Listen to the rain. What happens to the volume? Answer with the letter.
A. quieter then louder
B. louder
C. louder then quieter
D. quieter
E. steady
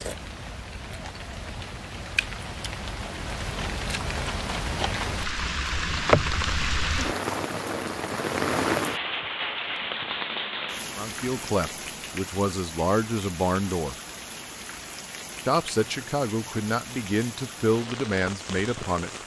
C.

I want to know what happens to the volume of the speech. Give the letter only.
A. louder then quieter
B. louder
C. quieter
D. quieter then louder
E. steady
E.